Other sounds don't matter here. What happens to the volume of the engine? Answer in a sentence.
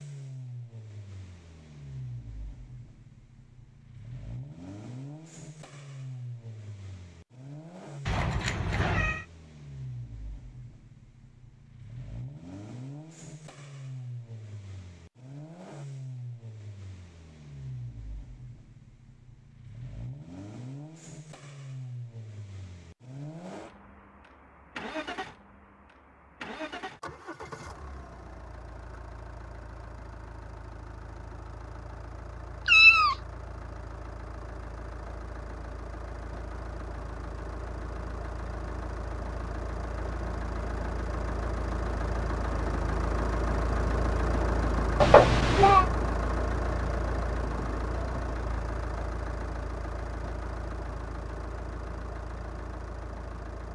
The loudness of the engine goes up.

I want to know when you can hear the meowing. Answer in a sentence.
The meowing can be heard from 8.1 to 9.2 s, from 32.6 to 33.1 s and from 45.0 to 45.9 s.